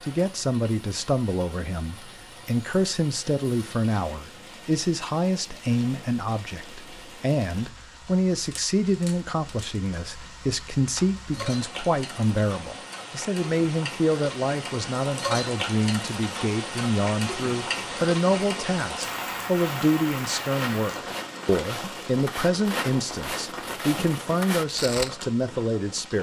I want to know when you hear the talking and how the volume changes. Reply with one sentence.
The talking can be heard from 0.0 to 26.1 s, at a steady volume.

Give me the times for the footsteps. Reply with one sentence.
The footsteps can be heard from 19.5 to 25.1 s.